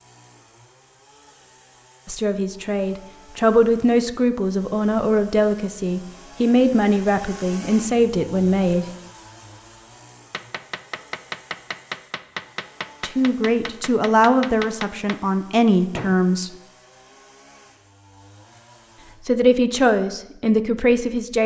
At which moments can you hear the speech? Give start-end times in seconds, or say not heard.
2.0-8.8, 13.0-16.5, 19.2-21.4.